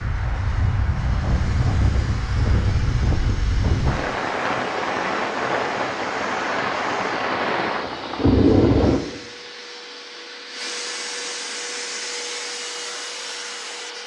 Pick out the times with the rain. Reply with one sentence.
The rain can be heard from 0.0 to 9.0 s.